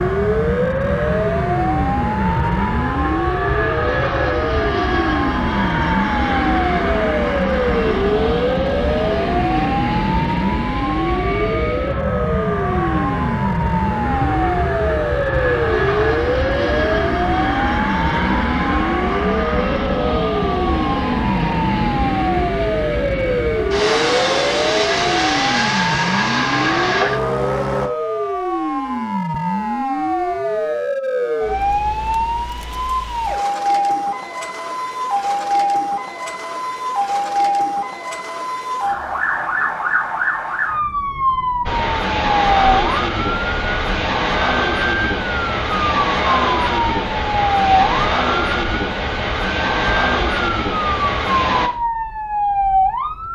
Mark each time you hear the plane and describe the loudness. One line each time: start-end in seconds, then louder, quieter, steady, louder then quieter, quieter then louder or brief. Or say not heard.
0.0-27.9 steady
41.6-51.7 steady.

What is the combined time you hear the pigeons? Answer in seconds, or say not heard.
not heard.